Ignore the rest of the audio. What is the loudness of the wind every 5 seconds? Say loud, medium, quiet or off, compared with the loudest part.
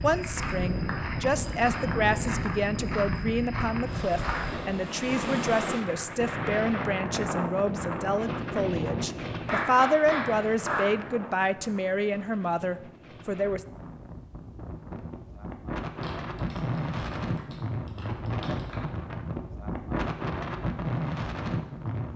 loud, loud, medium, loud, loud.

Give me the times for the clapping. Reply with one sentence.
The clapping can be heard from 0.3 to 2.5 s, from 9.4 to 10.9 s and from 16.0 to 18.8 s.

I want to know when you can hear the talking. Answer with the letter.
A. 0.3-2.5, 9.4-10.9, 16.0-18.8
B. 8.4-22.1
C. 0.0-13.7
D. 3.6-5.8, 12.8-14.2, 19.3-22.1
C.